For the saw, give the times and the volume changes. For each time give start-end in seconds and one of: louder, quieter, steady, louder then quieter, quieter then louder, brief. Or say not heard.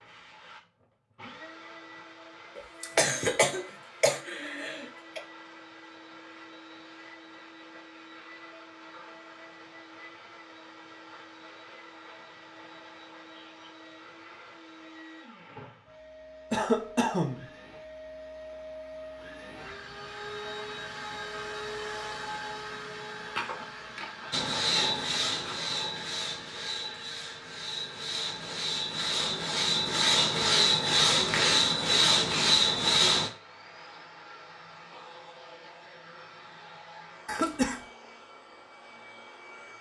24.3-33.3 quieter then louder.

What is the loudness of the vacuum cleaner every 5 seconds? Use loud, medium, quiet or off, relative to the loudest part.
medium, medium, medium, medium, loud, medium, medium, medium.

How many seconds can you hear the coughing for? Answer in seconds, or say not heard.
4 s.